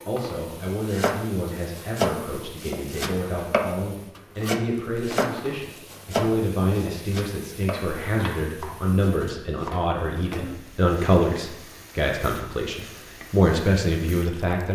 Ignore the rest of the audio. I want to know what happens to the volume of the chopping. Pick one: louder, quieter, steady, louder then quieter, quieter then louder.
quieter.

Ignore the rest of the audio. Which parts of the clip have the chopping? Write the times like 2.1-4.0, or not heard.
0.8-10.3.